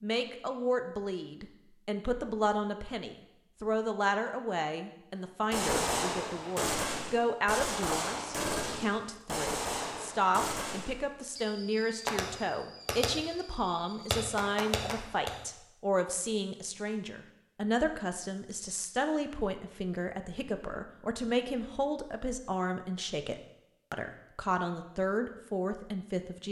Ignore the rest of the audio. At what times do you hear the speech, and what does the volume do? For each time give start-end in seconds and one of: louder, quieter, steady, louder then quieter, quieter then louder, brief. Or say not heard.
0.0-26.4 steady.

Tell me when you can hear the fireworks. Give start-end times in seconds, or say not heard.
5.5-15.3.